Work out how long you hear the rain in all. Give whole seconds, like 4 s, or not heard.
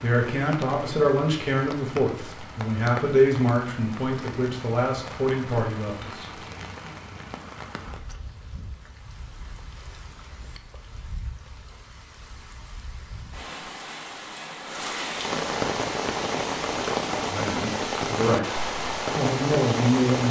20 s.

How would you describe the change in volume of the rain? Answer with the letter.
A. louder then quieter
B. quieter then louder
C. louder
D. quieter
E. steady
B.